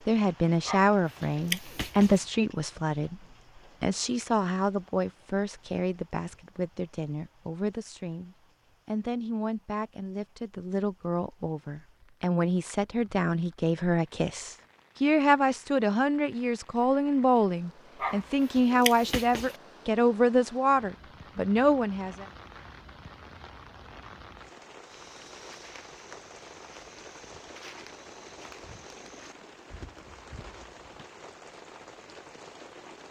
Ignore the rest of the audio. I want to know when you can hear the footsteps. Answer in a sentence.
The footsteps can be heard from 24.9 to 31.1 s.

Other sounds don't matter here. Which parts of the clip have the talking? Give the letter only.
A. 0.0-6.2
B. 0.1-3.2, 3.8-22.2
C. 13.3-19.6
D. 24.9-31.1
B.